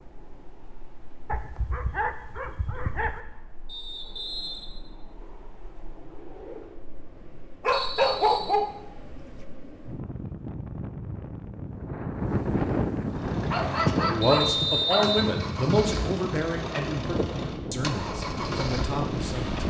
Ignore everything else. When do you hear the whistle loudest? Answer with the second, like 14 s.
15 s.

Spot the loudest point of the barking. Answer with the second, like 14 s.
8 s.